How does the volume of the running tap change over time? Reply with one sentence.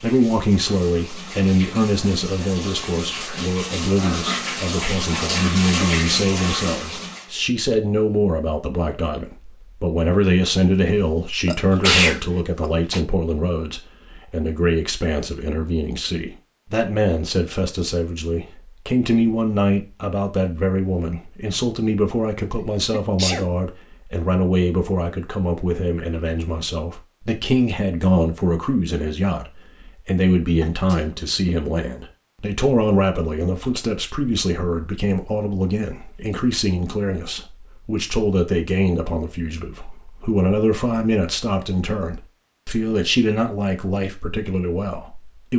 The loudness of the running tap goes up.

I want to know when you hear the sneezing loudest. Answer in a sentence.
The loudest moment of the sneezing is at 12 seconds.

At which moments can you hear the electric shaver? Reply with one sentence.
You can't hear the electric shaver here.